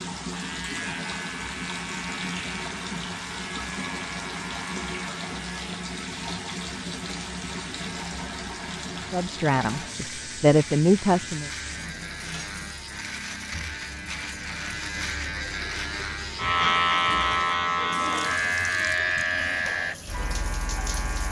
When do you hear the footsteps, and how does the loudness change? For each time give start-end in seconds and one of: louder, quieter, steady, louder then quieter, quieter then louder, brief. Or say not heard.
not heard.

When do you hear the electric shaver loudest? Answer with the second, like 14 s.
17 s.